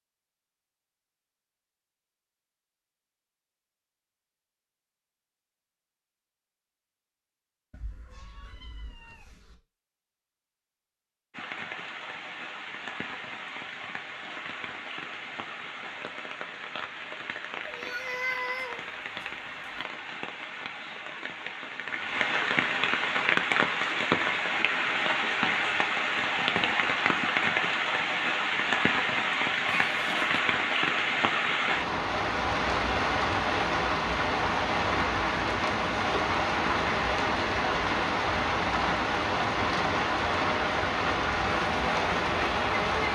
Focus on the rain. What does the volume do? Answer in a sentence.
The volume of the rain goes up.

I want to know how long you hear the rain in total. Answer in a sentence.
The rain can be heard for 32 seconds in total.